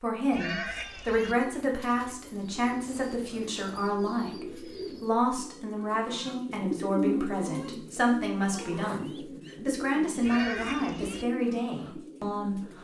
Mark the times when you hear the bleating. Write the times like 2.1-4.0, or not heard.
0.3-1.4, 10.2-11.2.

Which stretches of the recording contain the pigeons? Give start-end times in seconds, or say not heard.
1.2-12.7.